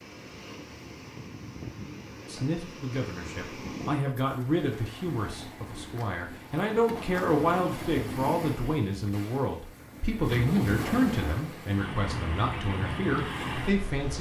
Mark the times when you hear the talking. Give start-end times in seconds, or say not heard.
2.2-14.1.